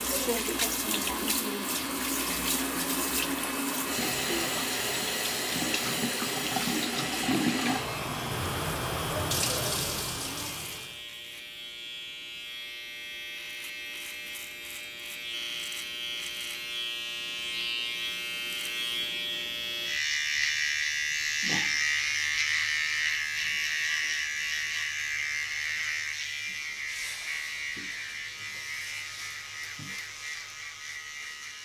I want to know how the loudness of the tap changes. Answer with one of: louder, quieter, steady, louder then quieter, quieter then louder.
steady.